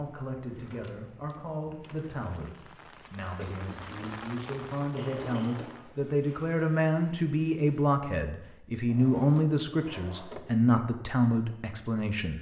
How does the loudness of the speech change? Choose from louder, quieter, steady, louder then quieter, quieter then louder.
louder.